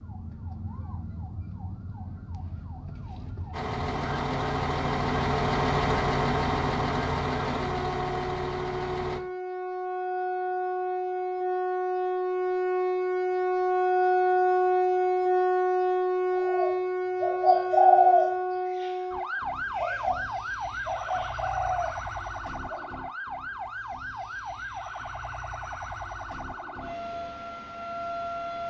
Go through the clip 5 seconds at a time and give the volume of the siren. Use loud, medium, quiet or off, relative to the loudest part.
quiet, medium, loud, loud, medium, medium.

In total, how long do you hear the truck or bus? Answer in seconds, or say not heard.
6 s.